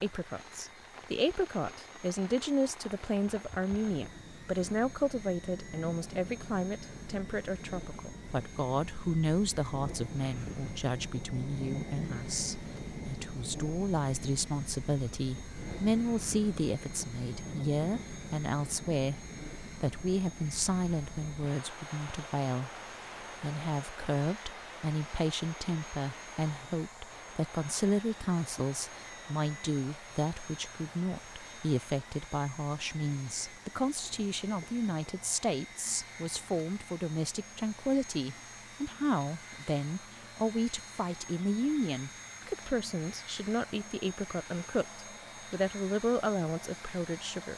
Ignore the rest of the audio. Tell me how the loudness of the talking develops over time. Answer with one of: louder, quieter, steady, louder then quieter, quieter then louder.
steady.